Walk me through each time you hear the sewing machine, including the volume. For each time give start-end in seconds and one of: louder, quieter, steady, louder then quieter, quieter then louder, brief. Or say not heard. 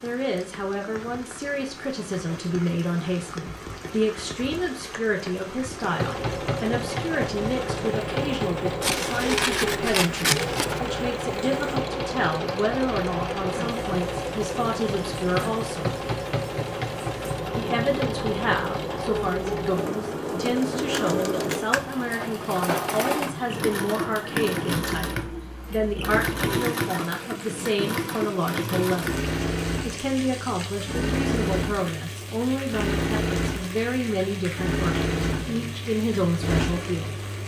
5.8-37.4 steady.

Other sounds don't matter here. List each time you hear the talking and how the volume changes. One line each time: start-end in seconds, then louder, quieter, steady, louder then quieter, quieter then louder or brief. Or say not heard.
0.0-15.9 steady
17.6-37.2 steady.